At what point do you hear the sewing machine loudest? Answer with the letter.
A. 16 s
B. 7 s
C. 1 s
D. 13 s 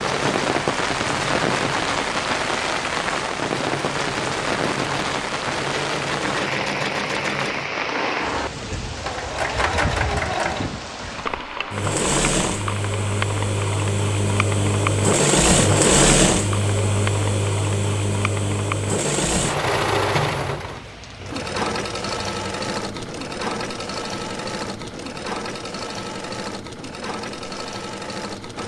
A.